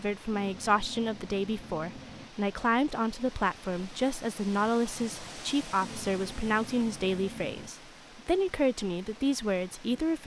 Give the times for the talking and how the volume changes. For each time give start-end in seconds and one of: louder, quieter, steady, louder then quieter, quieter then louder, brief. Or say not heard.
0.0-10.2 steady.